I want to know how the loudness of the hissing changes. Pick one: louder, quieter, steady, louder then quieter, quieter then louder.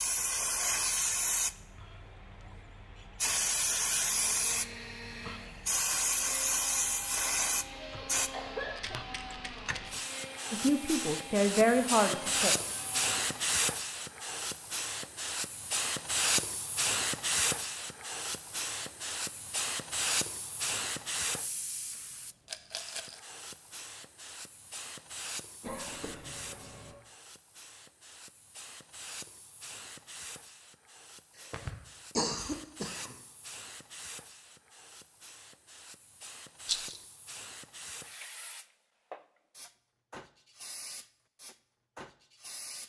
quieter.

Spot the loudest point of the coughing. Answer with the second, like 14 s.
32 s.